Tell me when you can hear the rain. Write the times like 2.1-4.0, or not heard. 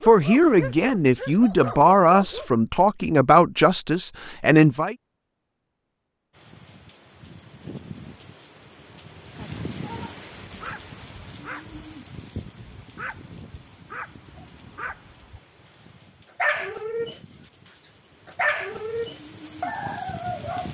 6.3-20.7.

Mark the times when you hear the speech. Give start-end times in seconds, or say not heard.
0.1-5.0.